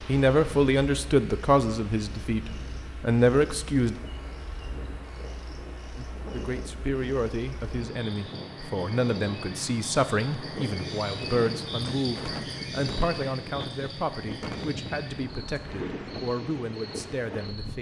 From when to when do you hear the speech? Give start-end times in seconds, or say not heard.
0.1-4.0, 6.0-17.7.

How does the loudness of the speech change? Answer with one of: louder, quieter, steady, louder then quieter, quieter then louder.
quieter.